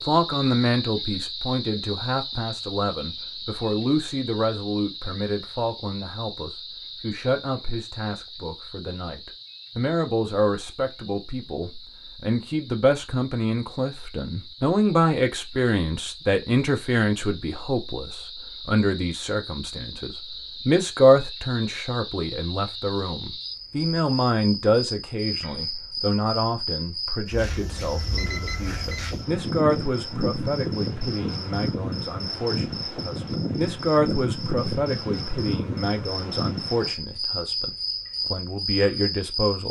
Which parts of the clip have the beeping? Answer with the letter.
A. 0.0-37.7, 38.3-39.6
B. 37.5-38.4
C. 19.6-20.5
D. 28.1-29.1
D.